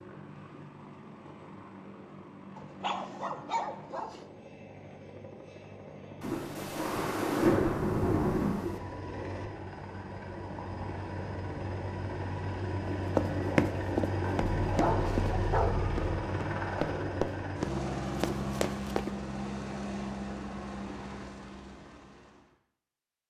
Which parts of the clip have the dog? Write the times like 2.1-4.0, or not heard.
2.5-4.2, 14.6-16.1.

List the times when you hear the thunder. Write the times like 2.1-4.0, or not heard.
6.2-8.8.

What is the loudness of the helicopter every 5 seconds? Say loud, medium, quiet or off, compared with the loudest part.
quiet, medium, loud, loud, medium.